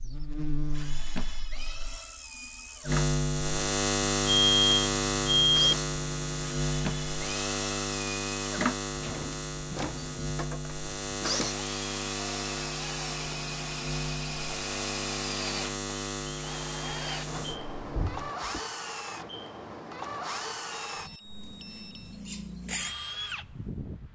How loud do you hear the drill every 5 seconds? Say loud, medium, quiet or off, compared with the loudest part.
medium, loud, loud, loud, loud.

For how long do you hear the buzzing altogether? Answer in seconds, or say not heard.
18 s.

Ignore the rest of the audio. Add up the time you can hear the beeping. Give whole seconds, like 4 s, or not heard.
3 s.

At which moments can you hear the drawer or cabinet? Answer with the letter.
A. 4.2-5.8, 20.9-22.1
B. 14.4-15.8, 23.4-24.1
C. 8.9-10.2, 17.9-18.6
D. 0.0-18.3
C.